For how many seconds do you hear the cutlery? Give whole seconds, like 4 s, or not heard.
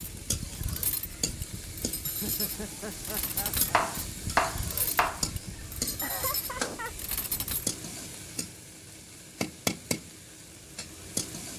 8 s.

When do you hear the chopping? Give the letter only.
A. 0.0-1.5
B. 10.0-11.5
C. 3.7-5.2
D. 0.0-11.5
C.